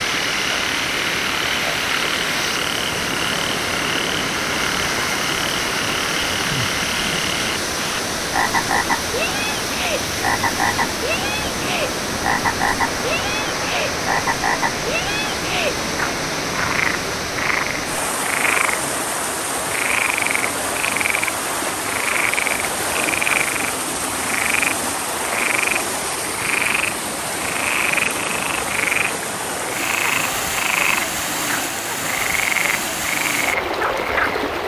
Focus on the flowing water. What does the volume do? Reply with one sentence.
The loudness of the flowing water stays about the same.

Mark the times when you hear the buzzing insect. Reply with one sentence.
You can't hear the buzzing insect here.